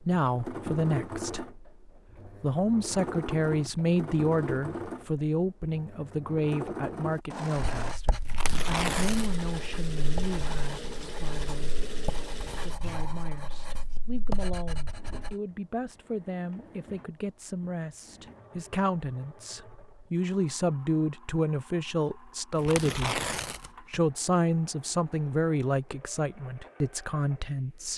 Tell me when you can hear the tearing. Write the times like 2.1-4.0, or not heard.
8.2-9.4, 22.6-24.0.